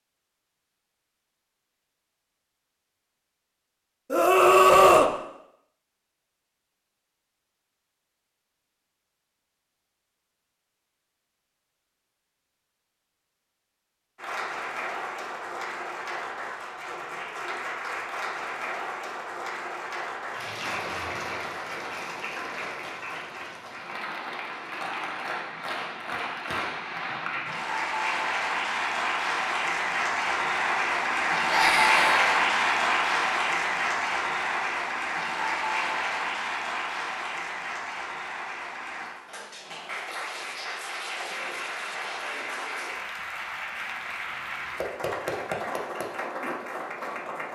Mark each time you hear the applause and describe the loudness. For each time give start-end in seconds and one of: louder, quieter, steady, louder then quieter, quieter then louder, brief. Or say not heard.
14.2-47.5 louder then quieter.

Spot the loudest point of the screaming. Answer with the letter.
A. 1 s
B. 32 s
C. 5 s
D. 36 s
C.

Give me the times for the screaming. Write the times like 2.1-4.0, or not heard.
4.1-5.1, 31.4-32.3.